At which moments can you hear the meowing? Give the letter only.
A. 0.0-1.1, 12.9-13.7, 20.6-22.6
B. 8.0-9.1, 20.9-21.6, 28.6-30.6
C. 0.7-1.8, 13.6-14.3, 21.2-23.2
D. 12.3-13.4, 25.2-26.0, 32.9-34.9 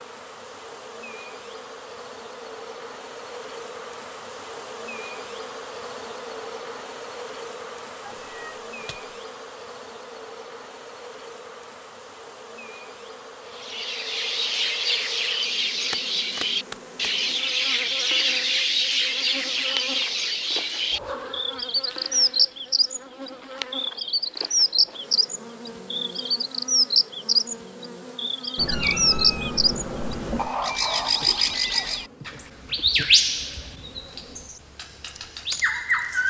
B.